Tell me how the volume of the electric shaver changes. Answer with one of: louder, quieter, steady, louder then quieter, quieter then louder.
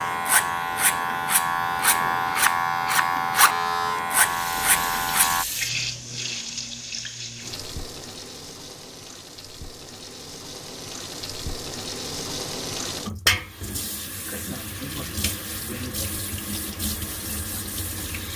steady.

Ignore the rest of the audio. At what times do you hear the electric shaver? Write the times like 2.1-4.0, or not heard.
0.0-5.5.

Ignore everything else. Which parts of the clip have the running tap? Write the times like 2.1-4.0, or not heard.
4.2-18.3.